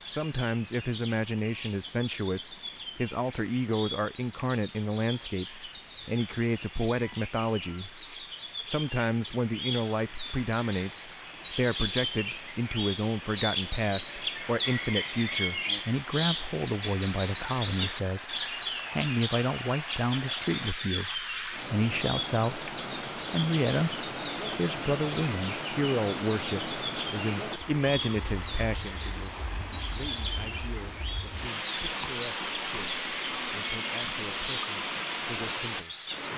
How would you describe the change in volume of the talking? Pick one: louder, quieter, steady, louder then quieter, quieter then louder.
quieter.